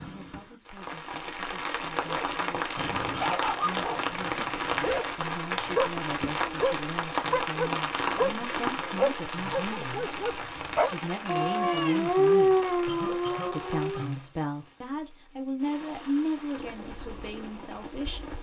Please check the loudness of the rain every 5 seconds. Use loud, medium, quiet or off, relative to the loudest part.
loud, loud, medium, quiet.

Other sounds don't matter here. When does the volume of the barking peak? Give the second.
12 s.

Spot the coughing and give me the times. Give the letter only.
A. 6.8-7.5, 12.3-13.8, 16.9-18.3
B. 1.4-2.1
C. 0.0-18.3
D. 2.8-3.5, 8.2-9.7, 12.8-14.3
D.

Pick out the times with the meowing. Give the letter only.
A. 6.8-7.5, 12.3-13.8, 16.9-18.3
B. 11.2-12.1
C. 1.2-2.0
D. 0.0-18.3
B.